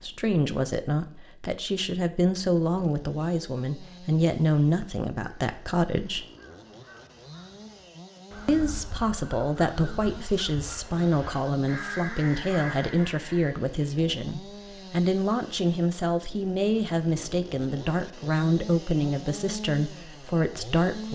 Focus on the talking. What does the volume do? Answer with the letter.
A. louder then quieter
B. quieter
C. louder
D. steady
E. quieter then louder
D.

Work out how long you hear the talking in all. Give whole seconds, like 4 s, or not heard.
19 s.